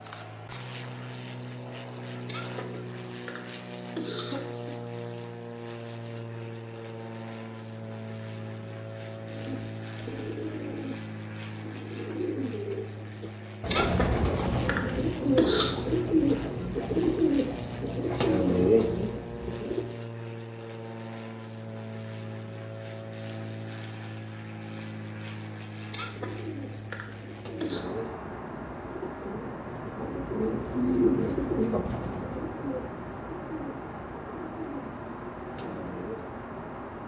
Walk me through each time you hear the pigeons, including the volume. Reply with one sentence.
You can hear the pigeons from 9.2 to 19.9 s, getting louder; and from 26.1 to 36.4 s, getting louder then quieter.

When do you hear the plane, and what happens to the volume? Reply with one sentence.
The plane can be heard from 0.0 to 37.0 s, at a steady volume.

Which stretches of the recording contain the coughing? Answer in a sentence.
You can hear the coughing from 2.2 to 4.8 s, from 13.7 to 15.8 s and from 25.9 to 27.9 s.